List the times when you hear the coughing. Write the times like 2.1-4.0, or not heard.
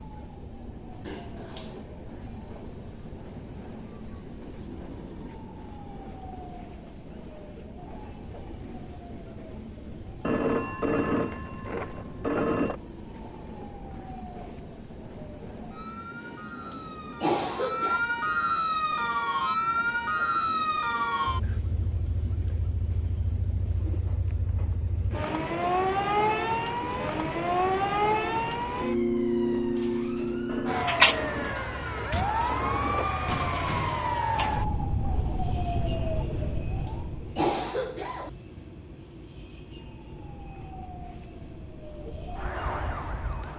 1.1-1.8, 16.2-18.0, 36.4-38.3.